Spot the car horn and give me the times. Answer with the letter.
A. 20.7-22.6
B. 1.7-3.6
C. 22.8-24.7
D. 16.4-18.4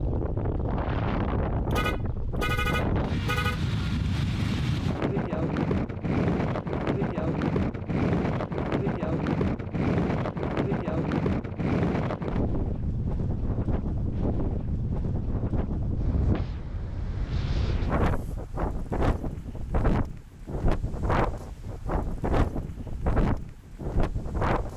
B.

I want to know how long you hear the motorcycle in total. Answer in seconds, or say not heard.
not heard.